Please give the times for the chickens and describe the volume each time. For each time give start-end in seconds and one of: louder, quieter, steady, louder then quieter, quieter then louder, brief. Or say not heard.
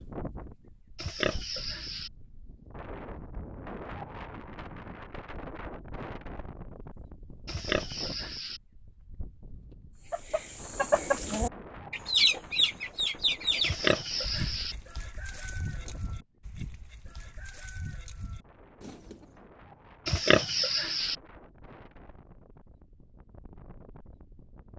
10.1-19.3 quieter.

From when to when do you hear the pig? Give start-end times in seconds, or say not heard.
0.9-2.1, 7.5-8.6, 13.6-14.8, 20.1-21.1.